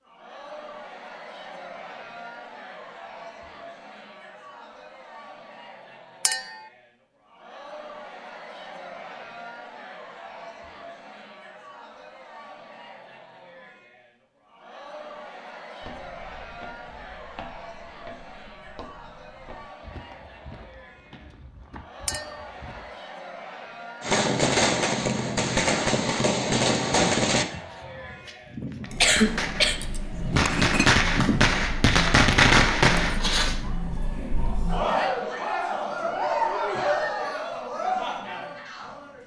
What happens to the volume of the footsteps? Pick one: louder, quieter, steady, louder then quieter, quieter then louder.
steady.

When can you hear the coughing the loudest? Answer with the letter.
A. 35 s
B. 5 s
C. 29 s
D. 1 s
C.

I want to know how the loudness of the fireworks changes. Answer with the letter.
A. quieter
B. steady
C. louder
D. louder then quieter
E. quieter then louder
E.